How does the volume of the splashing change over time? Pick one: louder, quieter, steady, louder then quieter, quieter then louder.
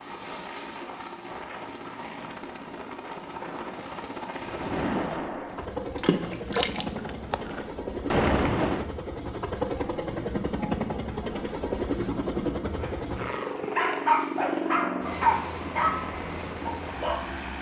quieter then louder.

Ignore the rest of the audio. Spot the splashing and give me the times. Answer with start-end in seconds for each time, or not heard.
4.3-8.8.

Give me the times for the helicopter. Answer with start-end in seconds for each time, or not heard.
0.0-17.5.